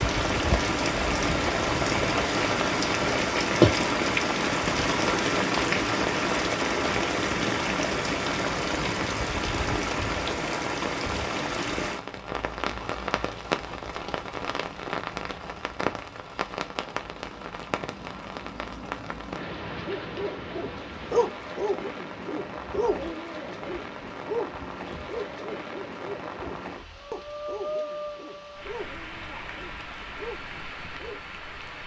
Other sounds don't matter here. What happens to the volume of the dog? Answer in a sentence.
The volume of the dog goes down.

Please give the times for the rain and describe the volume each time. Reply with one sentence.
You can hear the rain from 0.0 to 31.8 s, getting quieter.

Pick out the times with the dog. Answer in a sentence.
The dog can be heard from 19.9 to 31.2 s.